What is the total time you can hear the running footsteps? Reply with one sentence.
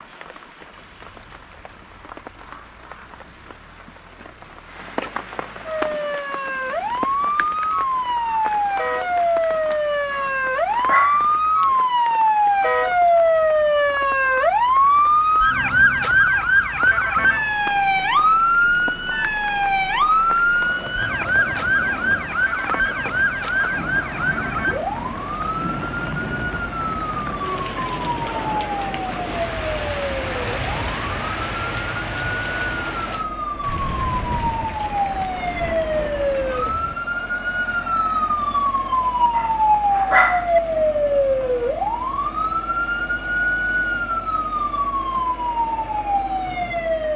You can't hear the running footsteps here.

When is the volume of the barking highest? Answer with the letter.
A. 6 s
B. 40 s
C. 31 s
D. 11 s
B.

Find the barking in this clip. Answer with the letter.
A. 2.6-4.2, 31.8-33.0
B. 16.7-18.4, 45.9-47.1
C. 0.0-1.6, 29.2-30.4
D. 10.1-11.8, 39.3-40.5
D.